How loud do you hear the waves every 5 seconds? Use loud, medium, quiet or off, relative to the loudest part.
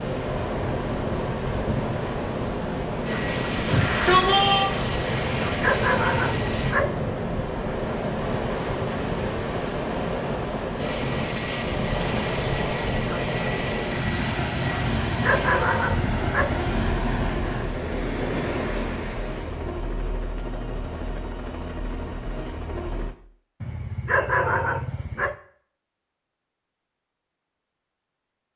loud, loud, loud, loud, off, off.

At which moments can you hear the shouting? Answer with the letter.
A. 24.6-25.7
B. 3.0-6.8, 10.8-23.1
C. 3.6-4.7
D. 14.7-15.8
C.